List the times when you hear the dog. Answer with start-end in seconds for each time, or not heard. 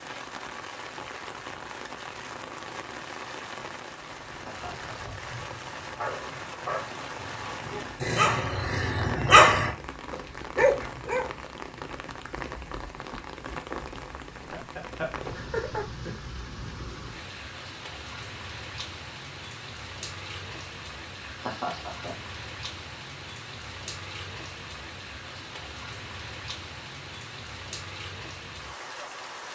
5.8-11.3.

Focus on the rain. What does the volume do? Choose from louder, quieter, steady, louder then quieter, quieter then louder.
steady.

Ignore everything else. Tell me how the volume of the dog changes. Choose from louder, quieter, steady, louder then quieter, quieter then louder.
louder then quieter.